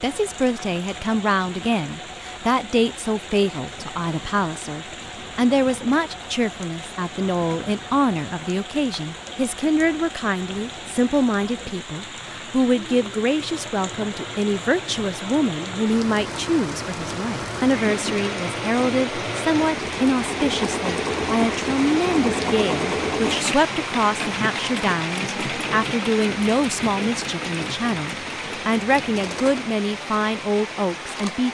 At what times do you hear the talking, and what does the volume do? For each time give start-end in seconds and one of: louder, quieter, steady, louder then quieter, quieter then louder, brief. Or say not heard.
0.0-31.5 steady.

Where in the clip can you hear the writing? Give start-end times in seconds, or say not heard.
not heard.